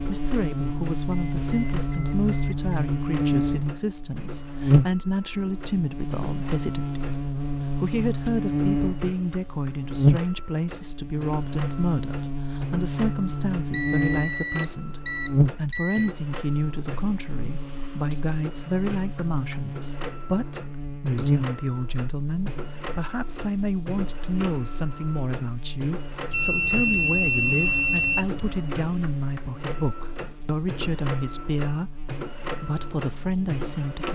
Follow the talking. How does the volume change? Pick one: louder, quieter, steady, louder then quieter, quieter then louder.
steady.